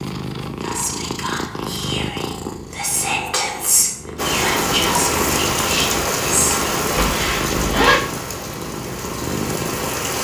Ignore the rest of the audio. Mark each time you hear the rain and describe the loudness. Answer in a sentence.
You can hear the rain from 4.2 to 10.1 s, getting quieter.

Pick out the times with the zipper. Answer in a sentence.
You can hear the zipper from 7.0 to 8.0 s.